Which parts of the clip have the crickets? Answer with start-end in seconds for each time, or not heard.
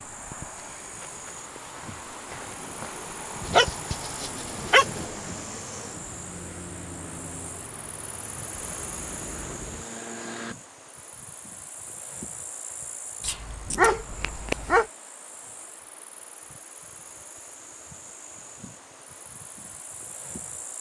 0.0-20.7.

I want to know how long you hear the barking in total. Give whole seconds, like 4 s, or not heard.
3 s.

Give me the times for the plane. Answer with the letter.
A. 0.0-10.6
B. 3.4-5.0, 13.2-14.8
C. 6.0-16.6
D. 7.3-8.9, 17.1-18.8
A.